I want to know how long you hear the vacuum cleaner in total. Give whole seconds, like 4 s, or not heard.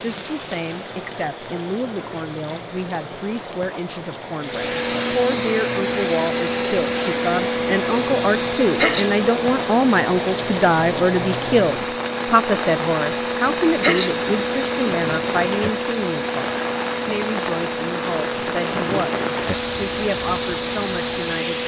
17 s.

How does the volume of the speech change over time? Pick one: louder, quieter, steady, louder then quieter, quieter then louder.
louder then quieter.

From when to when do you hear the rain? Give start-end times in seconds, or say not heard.
0.0-21.6.